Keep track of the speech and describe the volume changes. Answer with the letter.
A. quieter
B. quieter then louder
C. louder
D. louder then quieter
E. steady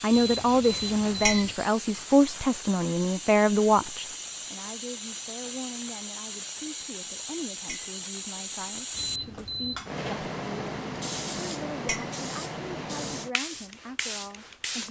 A.